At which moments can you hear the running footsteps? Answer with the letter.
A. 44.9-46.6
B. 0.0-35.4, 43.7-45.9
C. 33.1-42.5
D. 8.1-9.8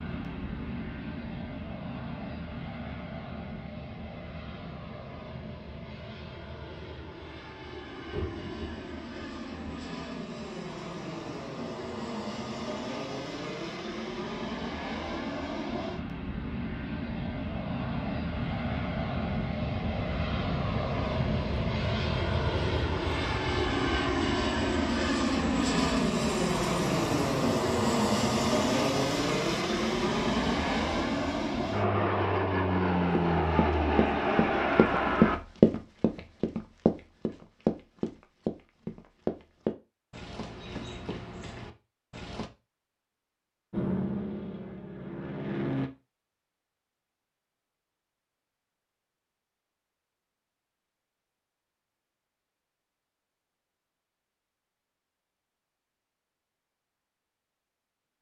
C.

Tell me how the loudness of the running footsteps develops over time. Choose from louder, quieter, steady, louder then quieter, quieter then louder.
quieter.